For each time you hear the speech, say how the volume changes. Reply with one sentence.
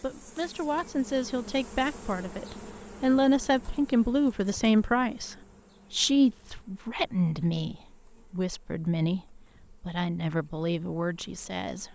The speech can be heard from 0.0 to 11.8 s, getting louder then quieter.